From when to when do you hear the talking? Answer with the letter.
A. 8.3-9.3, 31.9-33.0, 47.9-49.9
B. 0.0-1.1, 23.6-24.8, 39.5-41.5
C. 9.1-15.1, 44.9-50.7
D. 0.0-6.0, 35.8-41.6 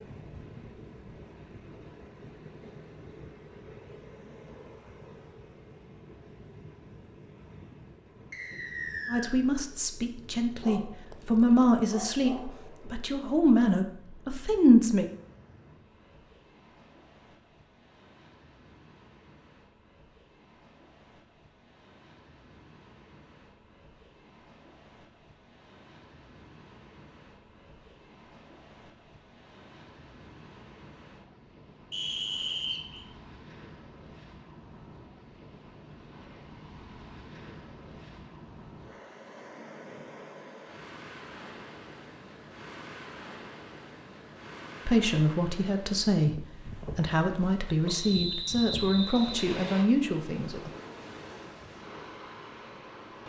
C.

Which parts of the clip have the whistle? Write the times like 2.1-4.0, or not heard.
8.3-9.3, 31.9-33.0, 47.9-49.9.